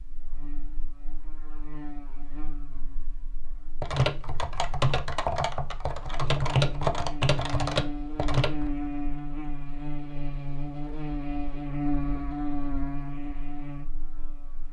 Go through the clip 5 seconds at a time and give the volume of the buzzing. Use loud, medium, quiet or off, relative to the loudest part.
quiet, loud, loud.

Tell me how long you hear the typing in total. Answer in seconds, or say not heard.
5 s.